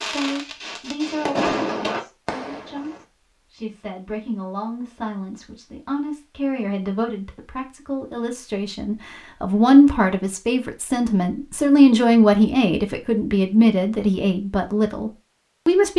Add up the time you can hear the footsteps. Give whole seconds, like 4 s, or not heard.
not heard.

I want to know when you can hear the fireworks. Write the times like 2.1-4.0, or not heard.
0.0-3.0.